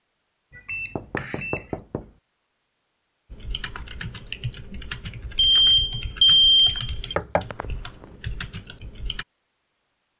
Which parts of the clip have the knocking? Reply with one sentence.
You can hear the knocking from 0.9 to 2.1 s and from 7.2 to 8.2 s.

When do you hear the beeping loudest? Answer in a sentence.
The volume of the beeping peaks at 6 seconds.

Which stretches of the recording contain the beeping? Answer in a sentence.
You can hear the beeping from 0.6 to 1.6 s and from 5.5 to 6.9 s.